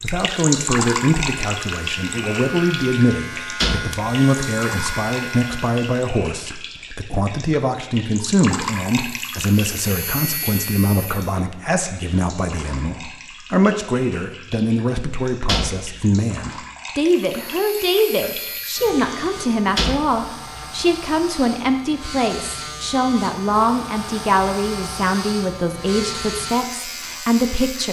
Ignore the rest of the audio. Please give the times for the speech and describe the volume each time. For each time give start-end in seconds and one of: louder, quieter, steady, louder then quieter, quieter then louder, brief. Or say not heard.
0.0-27.8 steady.